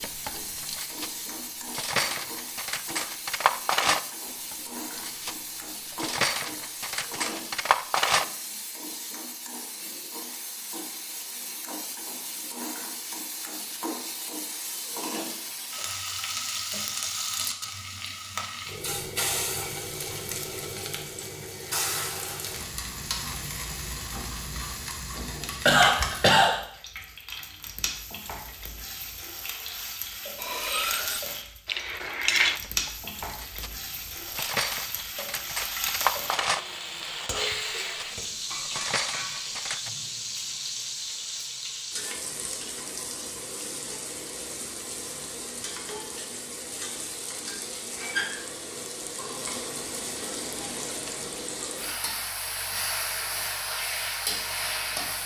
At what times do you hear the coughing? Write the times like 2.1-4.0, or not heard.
25.1-26.6.